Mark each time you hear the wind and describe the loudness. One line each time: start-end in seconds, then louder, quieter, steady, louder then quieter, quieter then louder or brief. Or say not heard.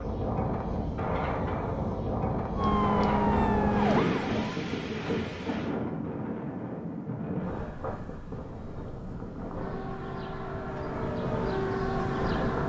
0.0-12.6 quieter.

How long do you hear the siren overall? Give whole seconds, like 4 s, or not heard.
5 s.